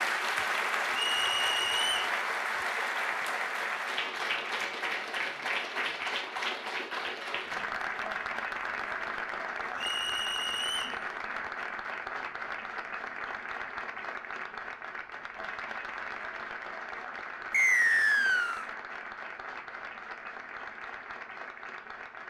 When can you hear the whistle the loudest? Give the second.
18 s.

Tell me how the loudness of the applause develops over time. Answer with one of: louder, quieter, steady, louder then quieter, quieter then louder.
quieter.